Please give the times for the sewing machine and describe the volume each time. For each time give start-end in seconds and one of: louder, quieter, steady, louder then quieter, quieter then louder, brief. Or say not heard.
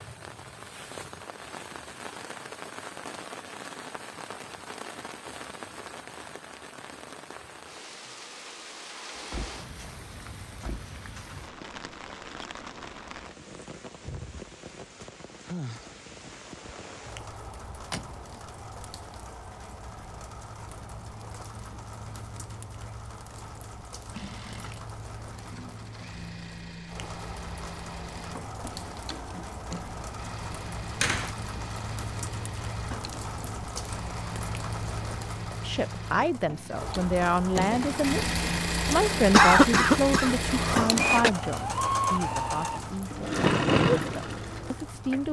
24.1-45.2 louder.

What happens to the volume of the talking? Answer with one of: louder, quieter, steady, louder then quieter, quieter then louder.
quieter.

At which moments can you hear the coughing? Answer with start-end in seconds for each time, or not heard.
38.9-41.3.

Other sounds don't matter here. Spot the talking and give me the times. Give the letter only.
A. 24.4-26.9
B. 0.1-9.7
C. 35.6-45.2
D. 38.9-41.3
C.